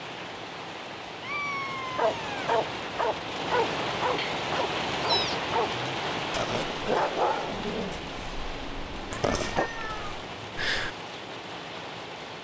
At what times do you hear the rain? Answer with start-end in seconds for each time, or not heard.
0.0-12.4.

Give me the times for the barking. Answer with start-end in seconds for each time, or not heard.
1.9-9.7.